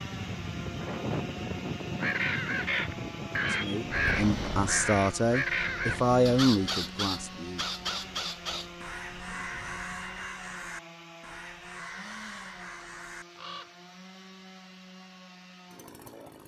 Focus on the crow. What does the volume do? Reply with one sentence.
The loudness of the crow goes down.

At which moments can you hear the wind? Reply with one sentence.
The wind can be heard from 0.0 to 10.3 s.